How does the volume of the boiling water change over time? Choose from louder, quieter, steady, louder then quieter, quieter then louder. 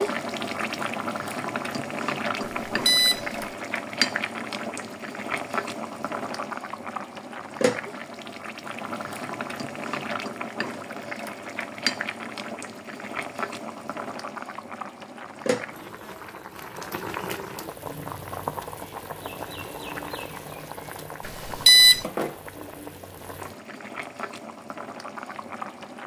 quieter.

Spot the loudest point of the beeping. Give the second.
22 s.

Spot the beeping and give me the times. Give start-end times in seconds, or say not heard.
2.4-3.5, 21.2-22.1.